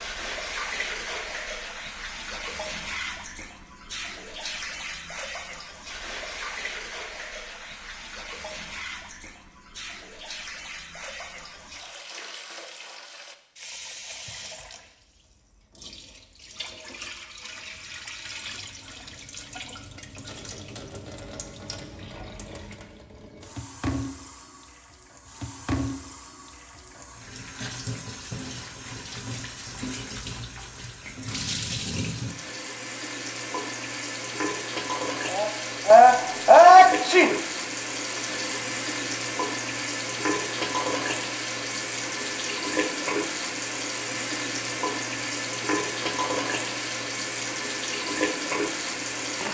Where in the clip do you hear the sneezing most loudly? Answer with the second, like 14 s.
37 s.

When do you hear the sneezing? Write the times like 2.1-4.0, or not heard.
35.3-37.4.